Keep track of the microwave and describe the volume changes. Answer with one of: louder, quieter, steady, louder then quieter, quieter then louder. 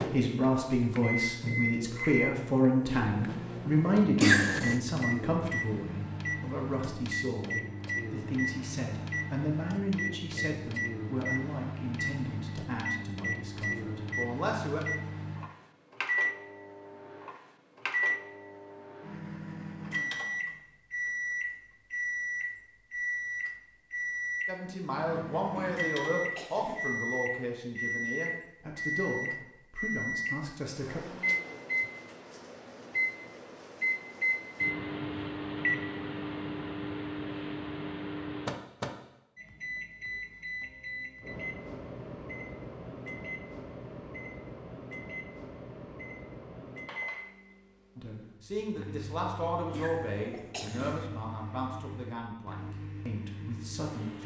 quieter.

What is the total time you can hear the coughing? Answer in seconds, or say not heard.
3 s.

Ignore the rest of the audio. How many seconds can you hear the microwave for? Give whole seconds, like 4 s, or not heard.
54 s.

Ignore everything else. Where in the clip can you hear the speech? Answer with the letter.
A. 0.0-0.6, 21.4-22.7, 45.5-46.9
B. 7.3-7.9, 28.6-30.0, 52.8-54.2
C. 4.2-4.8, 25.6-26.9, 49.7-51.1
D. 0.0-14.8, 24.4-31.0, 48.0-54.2
D.